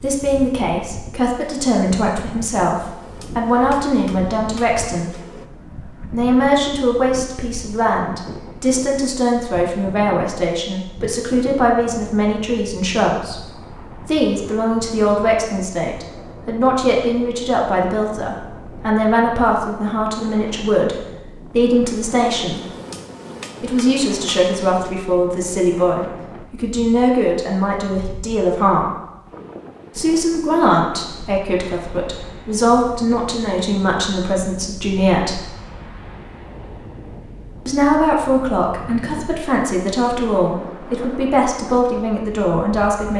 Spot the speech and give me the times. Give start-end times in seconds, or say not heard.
0.0-5.2, 6.1-22.6, 23.6-28.9, 29.9-35.4, 37.6-43.1.